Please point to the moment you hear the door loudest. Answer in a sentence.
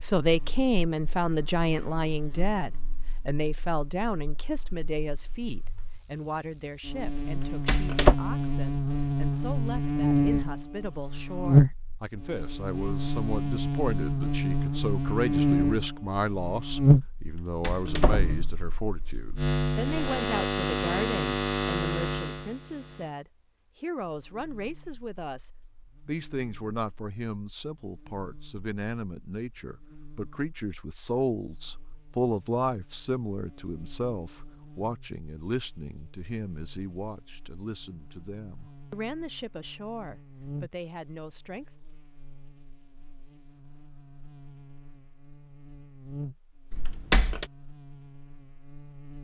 The loudest moment of the door is at 8 seconds.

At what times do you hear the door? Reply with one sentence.
You can hear the door from 7.2 to 8.2 s, from 17.2 to 18.7 s and from 46.7 to 47.5 s.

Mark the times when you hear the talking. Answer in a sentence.
The talking can be heard from 0.0 to 41.7 s.